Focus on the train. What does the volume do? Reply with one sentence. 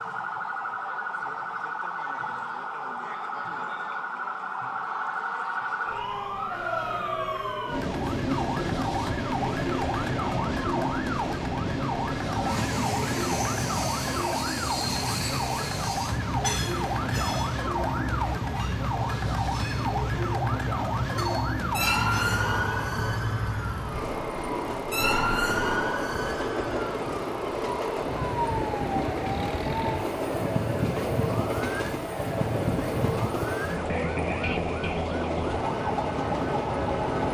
The volume of the train stays about the same.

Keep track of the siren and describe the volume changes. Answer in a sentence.
The volume of the siren stays about the same.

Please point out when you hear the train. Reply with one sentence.
You can hear the train from 7.7 to 37.2 s.